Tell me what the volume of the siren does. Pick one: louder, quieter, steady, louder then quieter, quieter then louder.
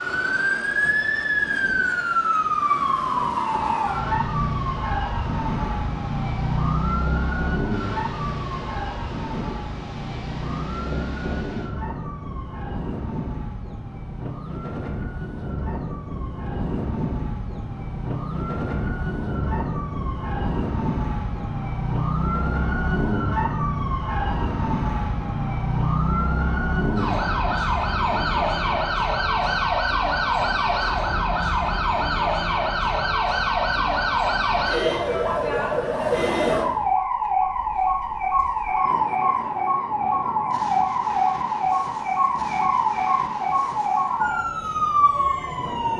quieter then louder.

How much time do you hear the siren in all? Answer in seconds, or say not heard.
46 s.